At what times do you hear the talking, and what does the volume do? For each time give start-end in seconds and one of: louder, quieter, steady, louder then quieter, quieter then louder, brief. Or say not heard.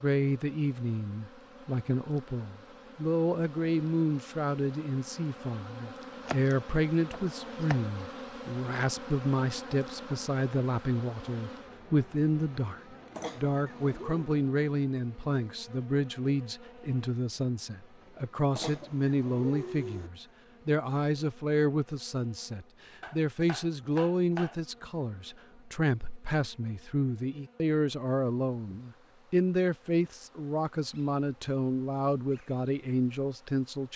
0.0-33.9 steady.